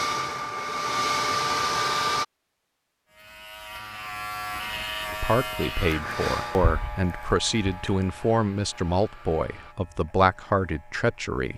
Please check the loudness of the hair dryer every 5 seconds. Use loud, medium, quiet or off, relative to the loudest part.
loud, quiet, off.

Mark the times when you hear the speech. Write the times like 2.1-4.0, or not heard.
5.1-11.5.